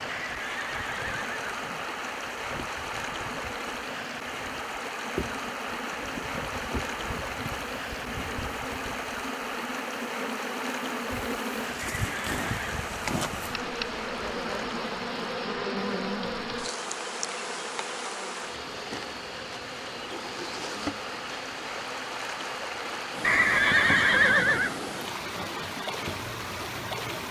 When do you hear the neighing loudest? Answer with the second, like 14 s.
24 s.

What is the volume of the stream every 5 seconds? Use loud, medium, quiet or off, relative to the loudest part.
loud, loud, loud, medium, loud, loud.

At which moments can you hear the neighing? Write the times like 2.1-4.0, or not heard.
0.1-1.9, 11.8-12.8, 23.2-24.8.